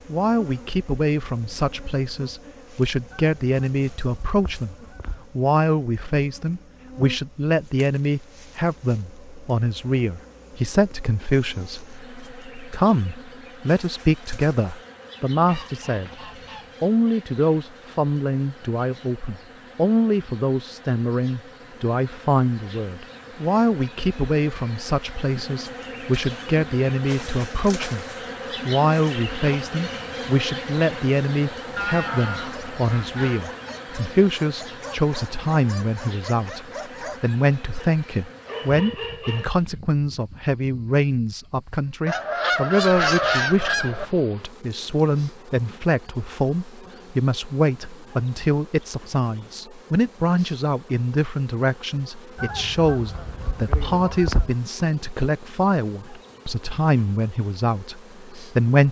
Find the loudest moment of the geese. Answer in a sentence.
The loudest moment of the geese is at 43 seconds.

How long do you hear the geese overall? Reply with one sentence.
You can hear the geese for 9 seconds altogether.